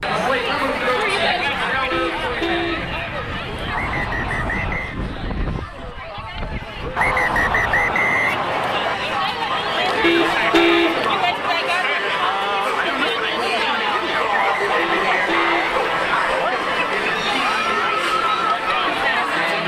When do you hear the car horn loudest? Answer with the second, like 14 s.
11 s.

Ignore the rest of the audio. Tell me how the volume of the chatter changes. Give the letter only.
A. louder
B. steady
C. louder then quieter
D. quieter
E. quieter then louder
E.